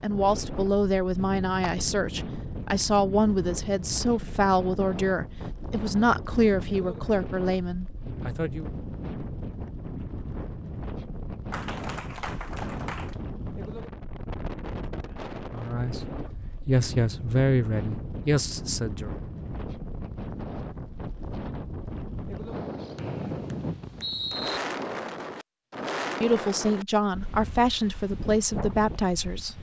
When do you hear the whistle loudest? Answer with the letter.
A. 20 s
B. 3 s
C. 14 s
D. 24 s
D.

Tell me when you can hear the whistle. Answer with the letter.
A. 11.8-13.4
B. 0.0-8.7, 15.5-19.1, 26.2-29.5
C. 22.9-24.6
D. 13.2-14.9
C.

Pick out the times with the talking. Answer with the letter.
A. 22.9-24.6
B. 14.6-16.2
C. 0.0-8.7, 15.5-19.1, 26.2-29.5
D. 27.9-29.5
C.